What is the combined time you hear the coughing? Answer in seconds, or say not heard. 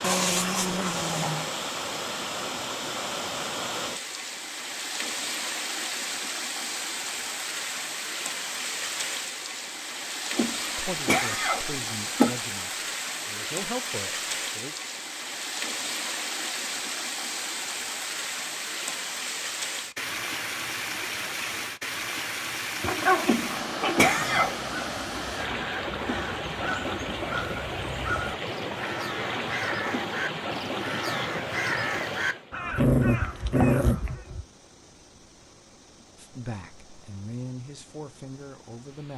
3 s.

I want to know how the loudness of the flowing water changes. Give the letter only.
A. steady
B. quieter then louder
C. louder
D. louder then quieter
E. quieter
E.